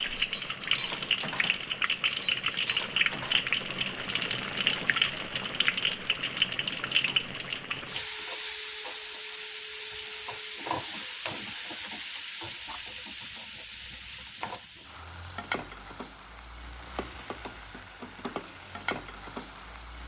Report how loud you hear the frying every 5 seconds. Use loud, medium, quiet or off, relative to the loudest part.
loud, loud, medium, medium.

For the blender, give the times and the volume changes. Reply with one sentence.
You can't hear the blender here.